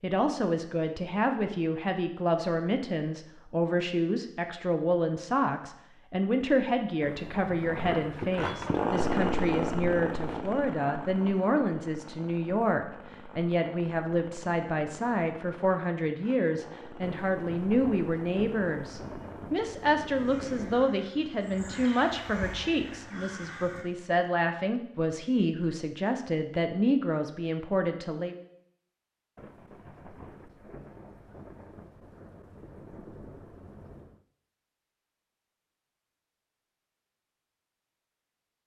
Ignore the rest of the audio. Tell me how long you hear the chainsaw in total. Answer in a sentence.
You can hear the chainsaw for 12 seconds altogether.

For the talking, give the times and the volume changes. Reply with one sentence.
You can hear the talking from 0.0 to 28.4 s, at a steady volume.